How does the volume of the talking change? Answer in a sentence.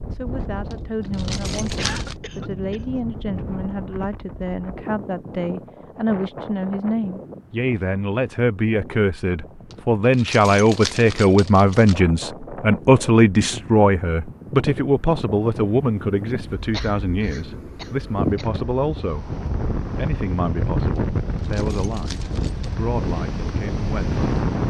The loudness of the talking goes up, then down.